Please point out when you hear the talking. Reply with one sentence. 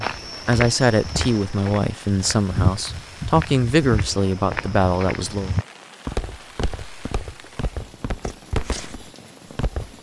You can hear the talking from 0.0 to 5.5 s.